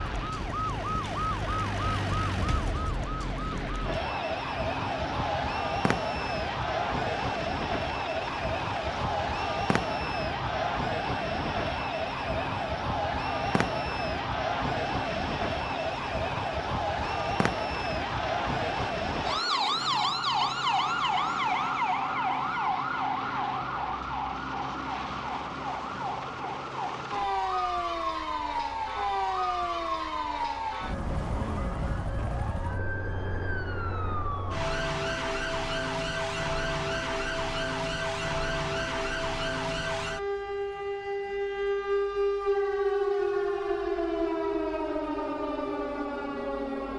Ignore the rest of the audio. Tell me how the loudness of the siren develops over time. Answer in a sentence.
The volume of the siren stays about the same.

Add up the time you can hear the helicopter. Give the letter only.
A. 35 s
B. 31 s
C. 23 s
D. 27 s
D.